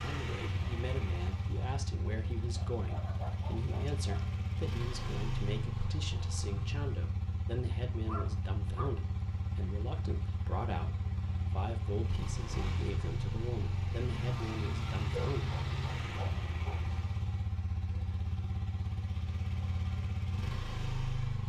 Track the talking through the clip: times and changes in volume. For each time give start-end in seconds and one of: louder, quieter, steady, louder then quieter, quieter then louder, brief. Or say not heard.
0.0-15.6 steady.